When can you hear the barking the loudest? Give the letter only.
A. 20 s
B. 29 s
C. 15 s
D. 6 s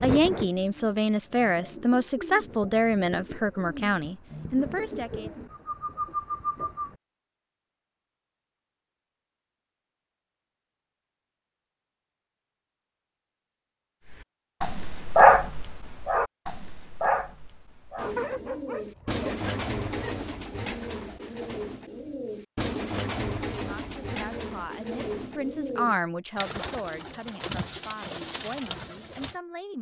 C.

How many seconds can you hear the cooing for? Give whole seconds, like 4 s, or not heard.
18 s.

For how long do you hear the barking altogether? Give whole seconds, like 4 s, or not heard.
6 s.